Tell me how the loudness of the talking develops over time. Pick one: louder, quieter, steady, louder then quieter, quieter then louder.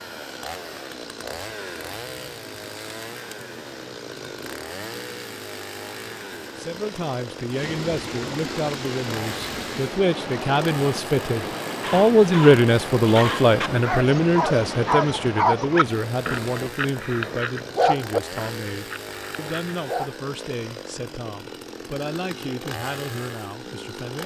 louder then quieter.